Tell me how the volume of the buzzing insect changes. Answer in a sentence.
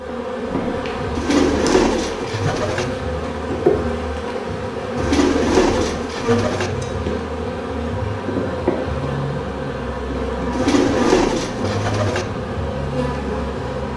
The loudness of the buzzing insect stays about the same.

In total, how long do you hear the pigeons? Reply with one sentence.
The pigeons can be heard for 5 seconds in total.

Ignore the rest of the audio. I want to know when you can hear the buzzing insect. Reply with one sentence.
The buzzing insect can be heard from 0.0 to 13.9 s.